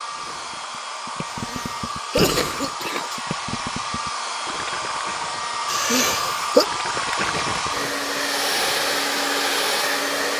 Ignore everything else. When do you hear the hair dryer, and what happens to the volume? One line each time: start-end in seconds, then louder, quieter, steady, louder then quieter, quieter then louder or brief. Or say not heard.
0.0-10.3 louder.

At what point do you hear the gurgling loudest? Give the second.
2 s.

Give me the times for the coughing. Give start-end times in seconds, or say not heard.
1.3-3.2, 5.7-6.7.